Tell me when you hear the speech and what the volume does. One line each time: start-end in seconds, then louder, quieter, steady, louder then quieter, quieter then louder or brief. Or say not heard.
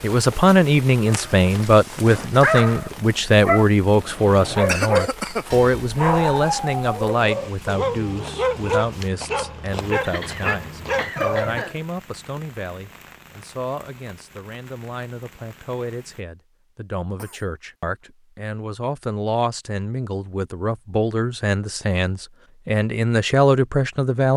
0.0-24.3 quieter then louder.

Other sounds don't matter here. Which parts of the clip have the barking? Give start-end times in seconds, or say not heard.
1.1-11.7.